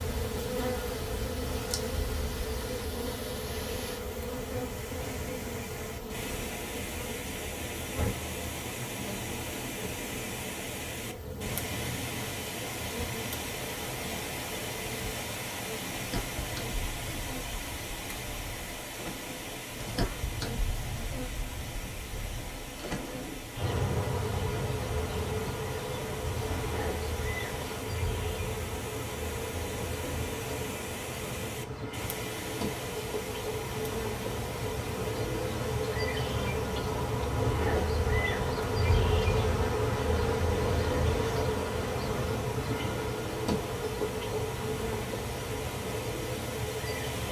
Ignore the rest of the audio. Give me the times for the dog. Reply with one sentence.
You can't hear the dog here.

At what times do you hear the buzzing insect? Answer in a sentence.
You can hear the buzzing insect from 0.0 to 47.2 s.